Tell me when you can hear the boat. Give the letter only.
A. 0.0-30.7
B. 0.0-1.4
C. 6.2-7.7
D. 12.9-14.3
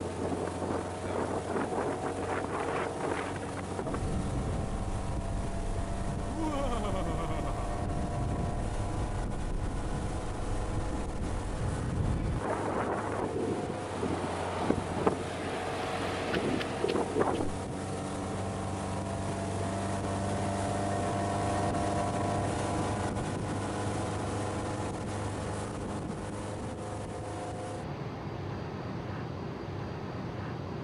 A.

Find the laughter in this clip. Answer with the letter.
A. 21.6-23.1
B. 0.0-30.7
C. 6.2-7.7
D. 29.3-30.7
C.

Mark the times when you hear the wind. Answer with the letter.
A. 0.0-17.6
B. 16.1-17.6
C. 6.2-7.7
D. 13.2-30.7
A.